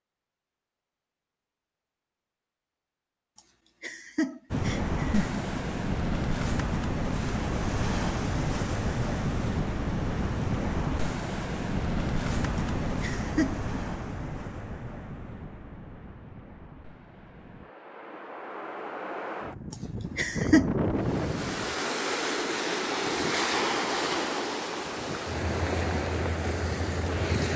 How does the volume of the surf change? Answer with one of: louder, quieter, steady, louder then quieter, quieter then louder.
quieter then louder.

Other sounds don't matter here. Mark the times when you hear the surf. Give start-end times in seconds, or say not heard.
4.5-27.5.